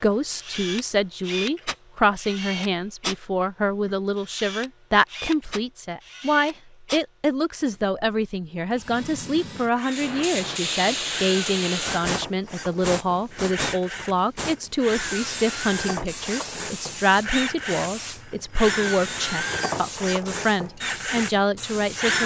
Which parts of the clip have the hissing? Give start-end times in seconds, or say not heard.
9.9-22.1.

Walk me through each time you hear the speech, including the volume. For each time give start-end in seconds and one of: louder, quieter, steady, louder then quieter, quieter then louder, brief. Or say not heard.
0.0-22.2 steady.